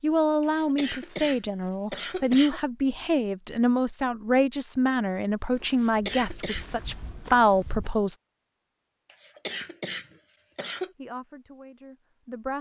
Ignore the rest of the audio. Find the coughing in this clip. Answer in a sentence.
You can hear the coughing from 0.4 to 2.6 s, from 5.7 to 6.7 s and from 9.1 to 10.9 s.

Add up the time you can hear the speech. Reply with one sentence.
The speech can be heard for 10 seconds in total.